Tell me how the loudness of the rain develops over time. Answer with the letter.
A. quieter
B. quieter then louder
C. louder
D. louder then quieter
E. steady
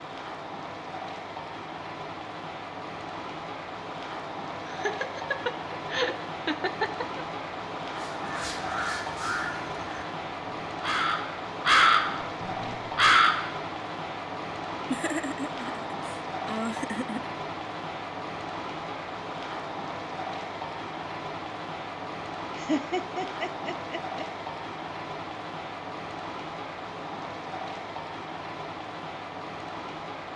E.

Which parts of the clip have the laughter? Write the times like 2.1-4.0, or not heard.
4.7-7.2, 14.9-17.4, 22.6-24.2.